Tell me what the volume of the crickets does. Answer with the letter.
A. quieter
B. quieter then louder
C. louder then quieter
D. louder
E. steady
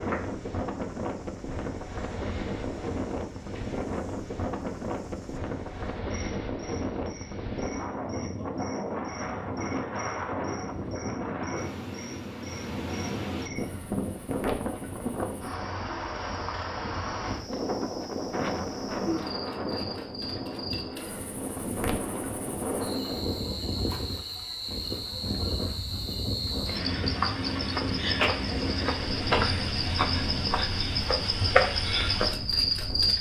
D.